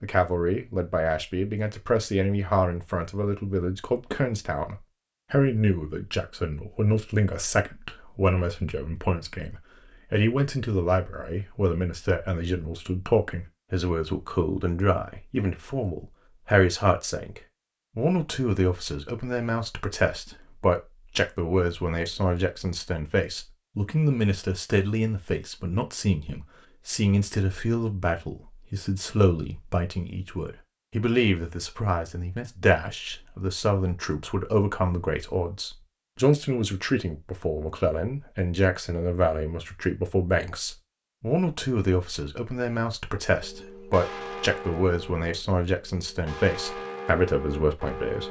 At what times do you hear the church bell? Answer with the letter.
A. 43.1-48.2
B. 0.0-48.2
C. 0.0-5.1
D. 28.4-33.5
A.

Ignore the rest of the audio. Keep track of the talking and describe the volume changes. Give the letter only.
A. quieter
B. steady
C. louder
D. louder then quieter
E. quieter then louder
B.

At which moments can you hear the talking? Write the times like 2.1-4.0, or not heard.
0.0-48.2.